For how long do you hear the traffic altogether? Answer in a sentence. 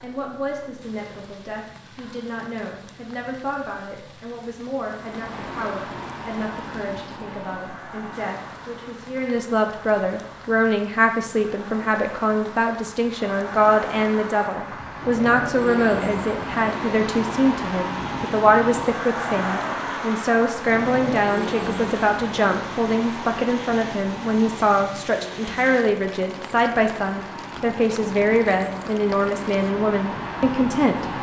The traffic can be heard for 26 seconds in total.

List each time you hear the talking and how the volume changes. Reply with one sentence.
You can hear the talking from 0.0 to 31.1 s, getting louder.